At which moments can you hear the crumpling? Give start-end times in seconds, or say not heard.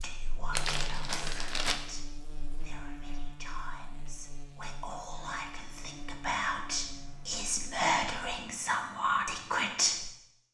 0.5-1.8.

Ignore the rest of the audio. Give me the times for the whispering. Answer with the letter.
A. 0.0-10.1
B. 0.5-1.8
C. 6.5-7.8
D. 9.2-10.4
A.